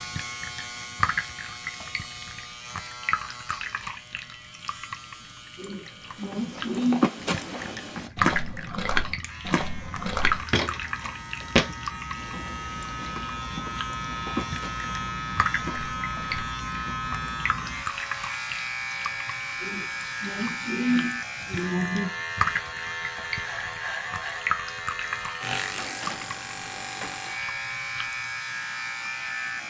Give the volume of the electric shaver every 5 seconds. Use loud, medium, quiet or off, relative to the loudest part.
medium, quiet, loud, loud, loud, loud.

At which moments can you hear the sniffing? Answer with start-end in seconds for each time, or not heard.
5.5-7.1, 19.6-22.1.